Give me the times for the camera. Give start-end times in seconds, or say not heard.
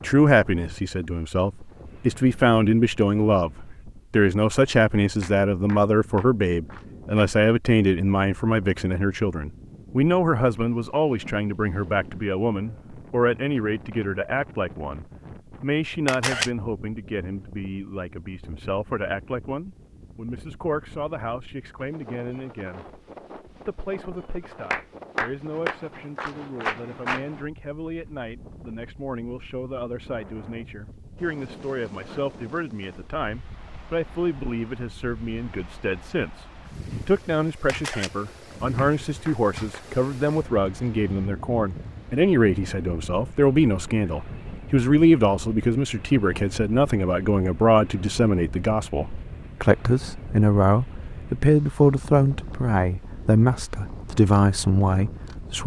16.1-16.5, 37.6-38.1.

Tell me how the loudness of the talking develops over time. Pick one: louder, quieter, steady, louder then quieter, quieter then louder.
quieter then louder.